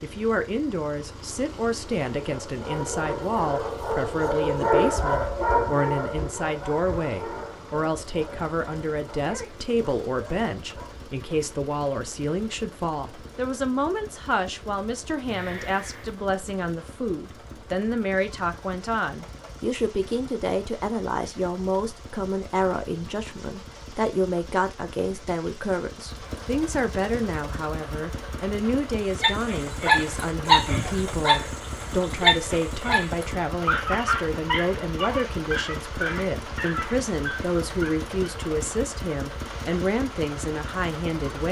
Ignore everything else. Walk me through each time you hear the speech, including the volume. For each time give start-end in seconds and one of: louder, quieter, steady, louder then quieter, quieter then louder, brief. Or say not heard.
0.0-41.4 steady.